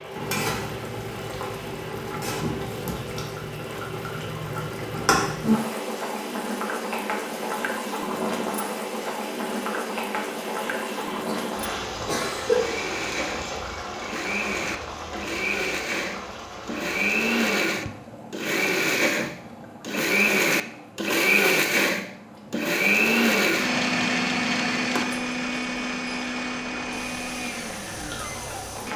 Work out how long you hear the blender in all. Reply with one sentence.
You can hear the blender for 29 seconds altogether.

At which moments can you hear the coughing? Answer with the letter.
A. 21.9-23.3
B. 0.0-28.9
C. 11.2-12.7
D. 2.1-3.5
C.